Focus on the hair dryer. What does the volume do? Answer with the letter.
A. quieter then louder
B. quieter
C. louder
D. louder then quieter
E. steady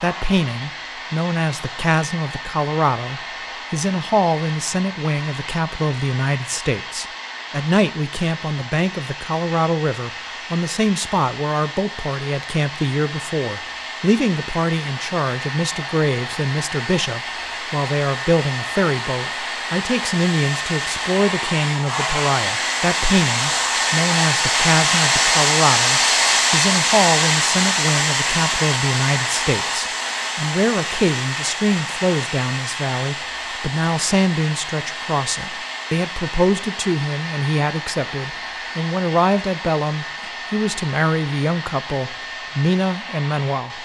D.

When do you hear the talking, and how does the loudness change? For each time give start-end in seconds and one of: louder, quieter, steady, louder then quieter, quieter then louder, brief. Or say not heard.
0.0-43.7 steady.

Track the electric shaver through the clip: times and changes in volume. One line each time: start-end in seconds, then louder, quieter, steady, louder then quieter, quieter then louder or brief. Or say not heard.
not heard.